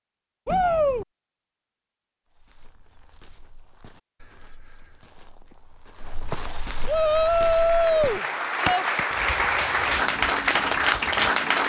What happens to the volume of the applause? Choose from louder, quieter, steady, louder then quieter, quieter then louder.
louder.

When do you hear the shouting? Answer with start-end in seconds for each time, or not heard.
0.5-1.1, 6.8-8.8.